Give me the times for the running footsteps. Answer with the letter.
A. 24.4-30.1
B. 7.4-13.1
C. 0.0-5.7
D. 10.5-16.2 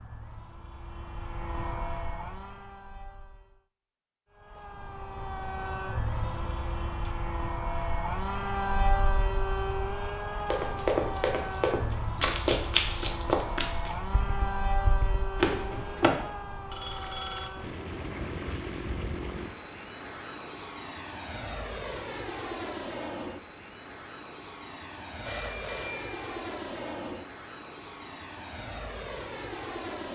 D.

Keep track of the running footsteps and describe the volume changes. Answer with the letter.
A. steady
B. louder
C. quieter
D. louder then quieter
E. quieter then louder
E.